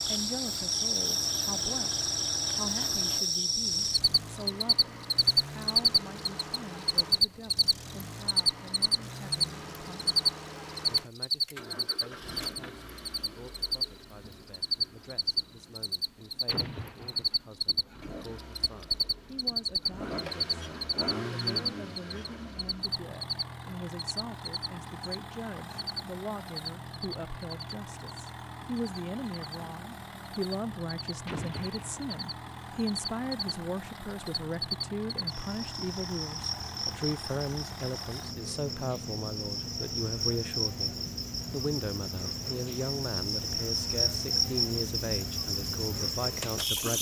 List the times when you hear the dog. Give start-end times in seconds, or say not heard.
not heard.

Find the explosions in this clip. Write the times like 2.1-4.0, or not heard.
16.4-17.4, 31.2-32.1.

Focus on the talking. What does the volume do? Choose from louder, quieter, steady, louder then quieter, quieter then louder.
quieter then louder.